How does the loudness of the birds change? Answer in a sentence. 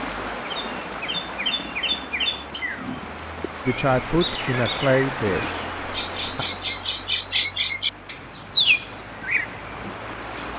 The loudness of the birds goes down, then up.